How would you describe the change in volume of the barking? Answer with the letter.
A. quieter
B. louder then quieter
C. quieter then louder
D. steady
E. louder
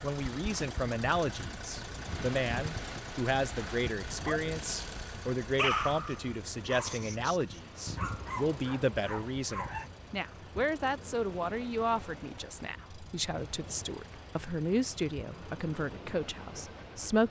B.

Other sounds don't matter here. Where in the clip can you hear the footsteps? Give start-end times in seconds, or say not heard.
not heard.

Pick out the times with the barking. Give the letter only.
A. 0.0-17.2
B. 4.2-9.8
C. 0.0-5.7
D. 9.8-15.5
B.